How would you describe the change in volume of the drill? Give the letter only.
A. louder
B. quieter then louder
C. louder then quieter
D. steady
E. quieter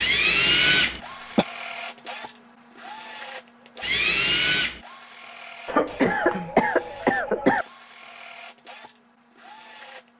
E.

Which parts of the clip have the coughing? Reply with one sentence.
The coughing can be heard from 0.7 to 1.4 s and from 5.7 to 7.7 s.